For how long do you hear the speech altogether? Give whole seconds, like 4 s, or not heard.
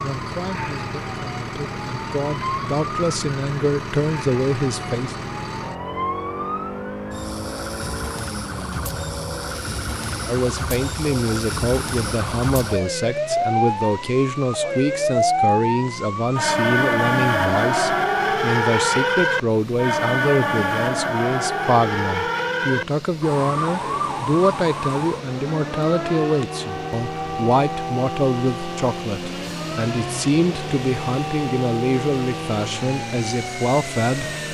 29 s.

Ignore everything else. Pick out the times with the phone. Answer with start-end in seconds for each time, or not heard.
not heard.